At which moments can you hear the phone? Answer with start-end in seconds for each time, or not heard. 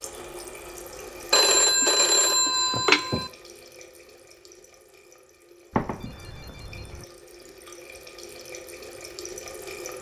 1.3-3.3, 5.7-7.0.